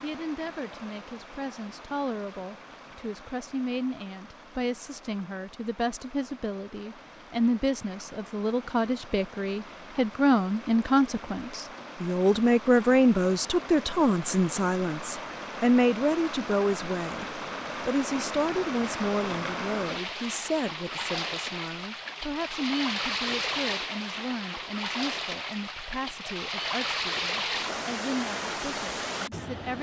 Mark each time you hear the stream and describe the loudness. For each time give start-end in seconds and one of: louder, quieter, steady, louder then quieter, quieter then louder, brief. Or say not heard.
0.0-29.7 louder.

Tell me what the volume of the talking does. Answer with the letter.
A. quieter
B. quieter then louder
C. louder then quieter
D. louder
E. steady
C.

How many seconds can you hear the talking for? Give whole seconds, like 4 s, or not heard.
30 s.